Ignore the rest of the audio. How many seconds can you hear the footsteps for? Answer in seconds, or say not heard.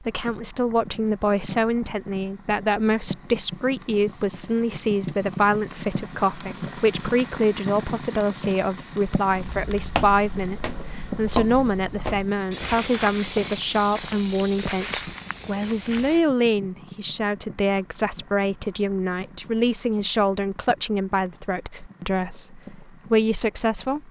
7 s.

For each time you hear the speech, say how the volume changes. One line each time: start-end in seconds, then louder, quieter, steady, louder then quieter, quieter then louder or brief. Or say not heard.
0.0-24.0 steady.